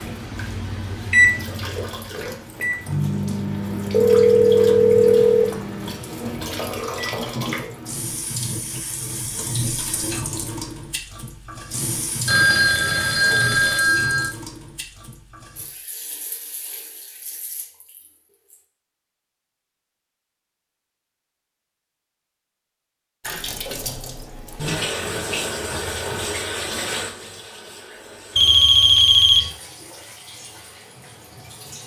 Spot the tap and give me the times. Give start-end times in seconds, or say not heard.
0.0-18.6, 23.2-31.8.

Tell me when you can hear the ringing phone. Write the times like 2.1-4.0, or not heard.
3.9-5.5, 12.2-14.3, 28.4-29.5.